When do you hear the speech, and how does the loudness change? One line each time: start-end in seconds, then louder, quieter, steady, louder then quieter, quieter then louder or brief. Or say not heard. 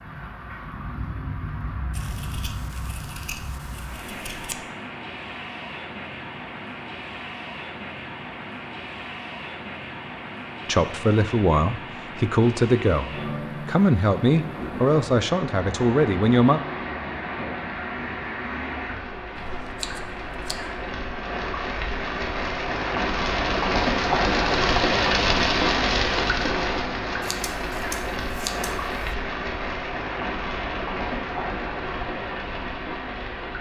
10.7-16.6 steady.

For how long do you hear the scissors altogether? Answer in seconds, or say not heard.
6 s.